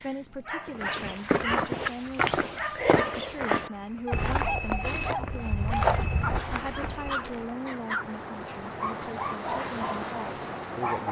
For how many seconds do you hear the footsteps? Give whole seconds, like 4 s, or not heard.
7 s.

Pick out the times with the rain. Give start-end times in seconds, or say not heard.
3.7-11.0.